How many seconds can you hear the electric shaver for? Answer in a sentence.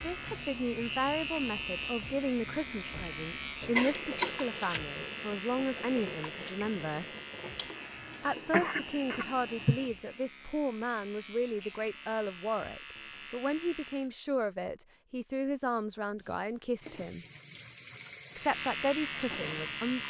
You can hear the electric shaver for 16 seconds altogether.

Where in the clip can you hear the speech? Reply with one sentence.
You can hear the speech from 0.0 to 7.0 s, from 8.2 to 17.2 s and from 18.4 to 20.0 s.